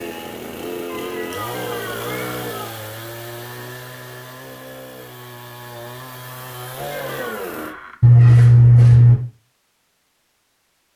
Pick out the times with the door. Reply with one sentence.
The door can be heard from 1.5 to 2.5 s and from 6.9 to 8.0 s.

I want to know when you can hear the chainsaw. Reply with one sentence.
The chainsaw can be heard from 0.0 to 7.8 s.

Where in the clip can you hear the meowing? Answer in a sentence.
You can hear the meowing from 0.9 to 2.8 s and from 8.0 to 9.2 s.